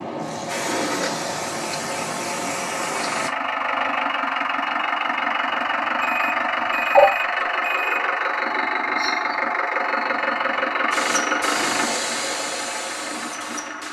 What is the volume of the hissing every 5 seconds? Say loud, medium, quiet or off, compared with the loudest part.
loud, off, loud.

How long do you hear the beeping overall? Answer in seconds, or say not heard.
2 s.